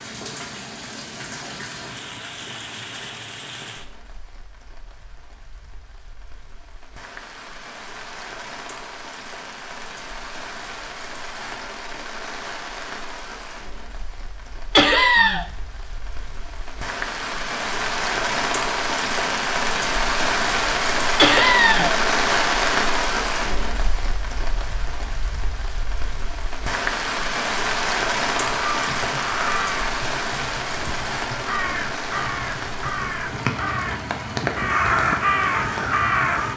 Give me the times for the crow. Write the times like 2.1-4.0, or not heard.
28.4-36.5.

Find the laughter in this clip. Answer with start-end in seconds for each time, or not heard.
14.8-15.4, 21.1-21.9.